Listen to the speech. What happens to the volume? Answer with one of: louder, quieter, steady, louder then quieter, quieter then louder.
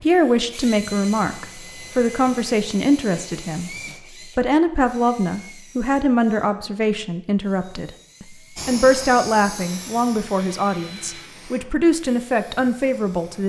steady.